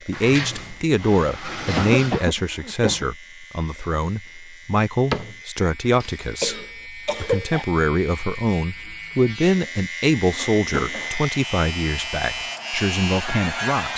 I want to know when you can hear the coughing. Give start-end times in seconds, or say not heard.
1.8-3.0, 6.0-7.7, 10.3-11.2.